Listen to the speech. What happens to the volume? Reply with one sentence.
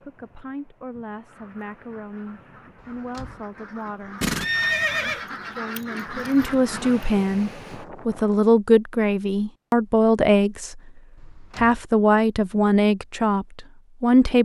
The loudness of the speech goes up.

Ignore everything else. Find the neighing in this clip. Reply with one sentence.
You can hear the neighing from 4.2 to 5.2 s.